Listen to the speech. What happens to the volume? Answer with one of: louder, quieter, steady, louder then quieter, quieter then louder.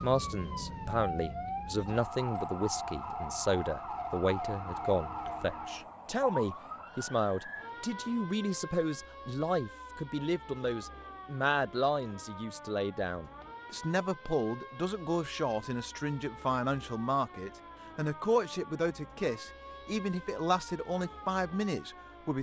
steady.